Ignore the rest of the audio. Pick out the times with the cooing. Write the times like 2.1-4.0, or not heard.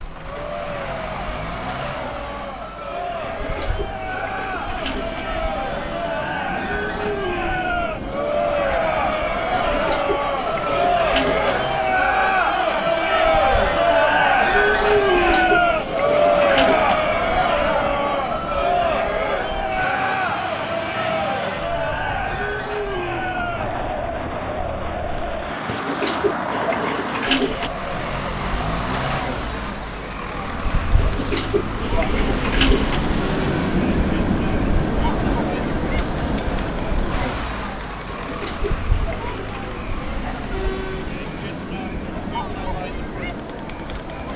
3.2-5.2, 9.5-11.6, 14.9-16.9, 25.6-27.7, 30.9-33.0, 38.0-39.8.